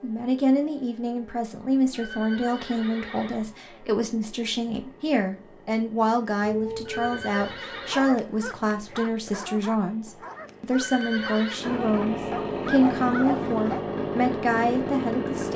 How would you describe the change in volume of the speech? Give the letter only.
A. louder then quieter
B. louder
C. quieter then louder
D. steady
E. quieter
D.